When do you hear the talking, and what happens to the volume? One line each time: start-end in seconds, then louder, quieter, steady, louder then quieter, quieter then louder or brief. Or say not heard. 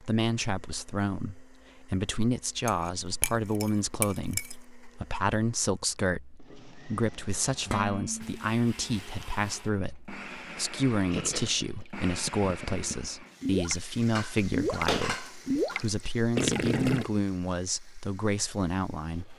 0.0-19.3 steady.